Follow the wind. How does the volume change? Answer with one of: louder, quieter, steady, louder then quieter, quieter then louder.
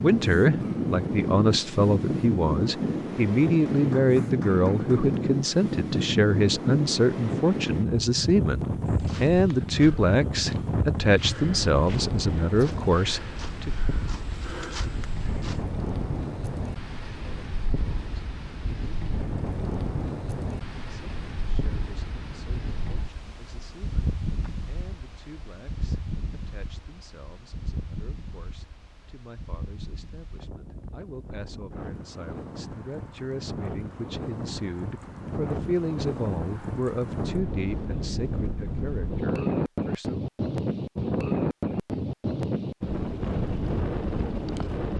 quieter then louder.